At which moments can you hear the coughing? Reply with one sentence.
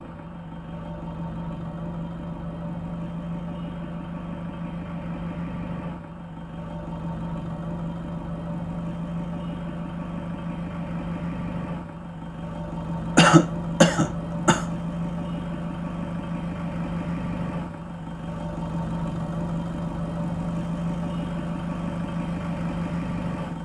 The coughing can be heard from 13.2 to 14.7 s.